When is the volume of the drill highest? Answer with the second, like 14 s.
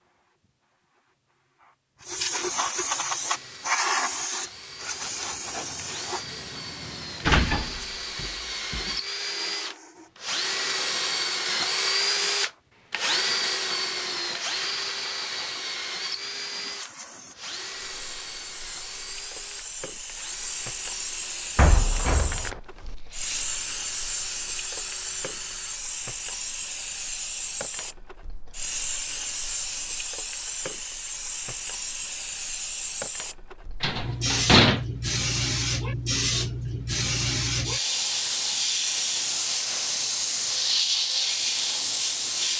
12 s.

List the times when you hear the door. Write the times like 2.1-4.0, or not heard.
7.2-8.9, 21.6-22.6, 33.8-34.8.